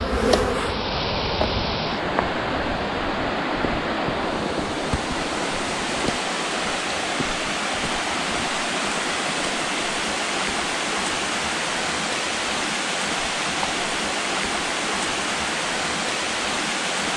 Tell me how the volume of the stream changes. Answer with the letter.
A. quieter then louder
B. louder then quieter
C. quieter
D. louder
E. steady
E.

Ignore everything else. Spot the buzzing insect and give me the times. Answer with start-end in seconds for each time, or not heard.
0.0-1.8.